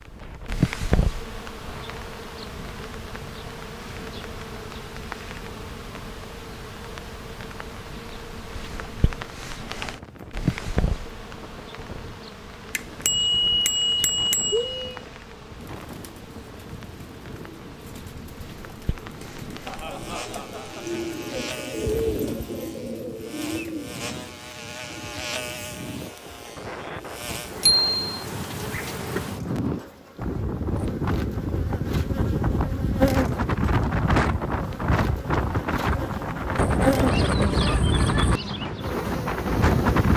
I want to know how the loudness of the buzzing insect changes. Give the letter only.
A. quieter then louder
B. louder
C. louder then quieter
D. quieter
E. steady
A.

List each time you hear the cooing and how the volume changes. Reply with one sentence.
The cooing can be heard from 15.7 to 26.6 s, getting louder then quieter.